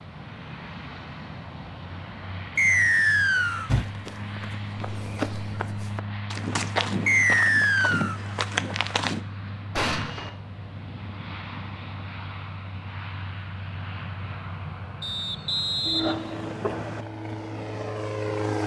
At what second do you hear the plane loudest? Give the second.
18 s.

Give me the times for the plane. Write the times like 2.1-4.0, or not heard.
0.0-18.6.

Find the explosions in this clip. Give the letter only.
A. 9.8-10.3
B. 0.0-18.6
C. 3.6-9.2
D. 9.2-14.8
A.